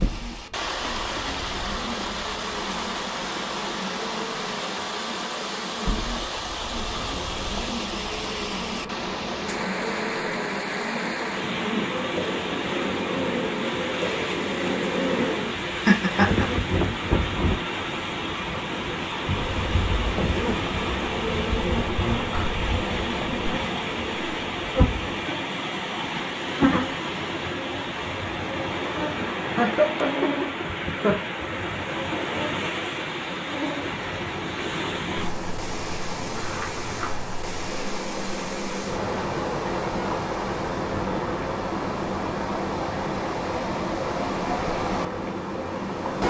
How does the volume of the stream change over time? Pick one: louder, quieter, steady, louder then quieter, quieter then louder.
steady.